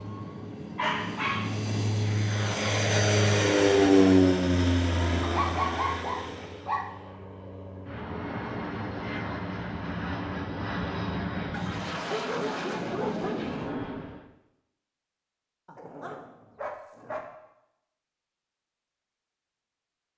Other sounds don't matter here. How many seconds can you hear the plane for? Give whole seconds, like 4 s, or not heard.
14 s.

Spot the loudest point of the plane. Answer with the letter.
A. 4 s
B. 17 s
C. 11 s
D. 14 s
A.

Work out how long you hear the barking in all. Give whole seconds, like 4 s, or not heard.
6 s.